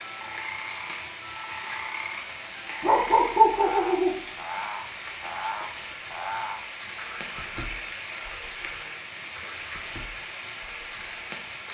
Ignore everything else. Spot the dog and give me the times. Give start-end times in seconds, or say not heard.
2.8-4.2.